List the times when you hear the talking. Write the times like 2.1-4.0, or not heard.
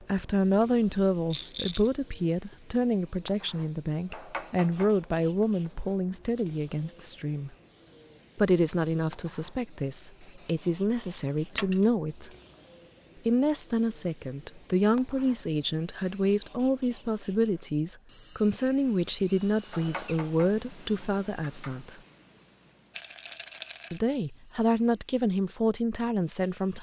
0.0-7.5, 8.3-12.3, 13.2-22.0, 23.9-26.7.